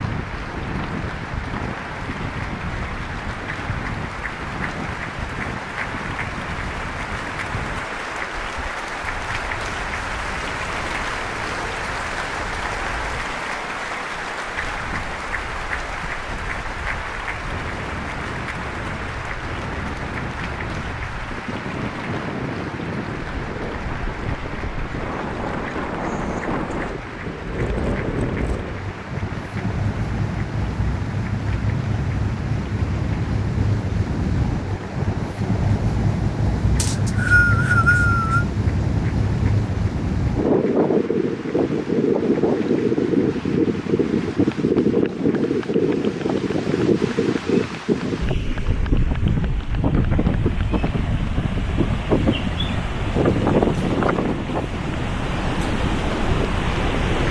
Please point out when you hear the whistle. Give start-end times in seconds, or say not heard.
36.8-38.5.